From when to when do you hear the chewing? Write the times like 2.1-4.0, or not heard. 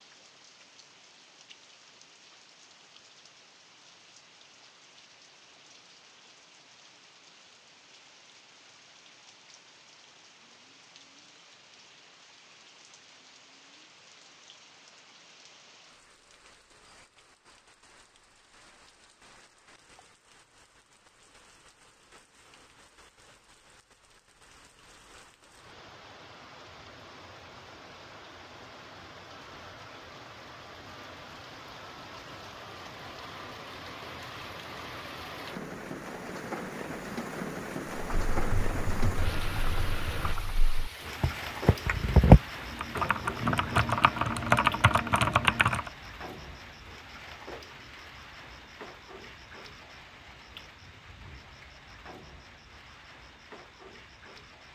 not heard.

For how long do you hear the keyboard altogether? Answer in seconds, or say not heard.
8 s.